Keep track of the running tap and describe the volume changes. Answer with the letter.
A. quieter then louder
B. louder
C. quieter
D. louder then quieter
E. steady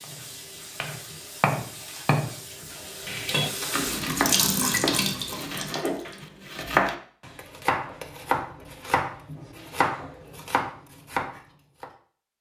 B.